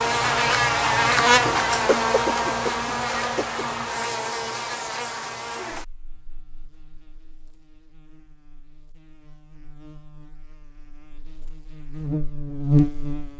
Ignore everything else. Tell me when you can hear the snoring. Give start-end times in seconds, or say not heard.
not heard.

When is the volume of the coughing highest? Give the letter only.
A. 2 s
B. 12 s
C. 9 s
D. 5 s
A.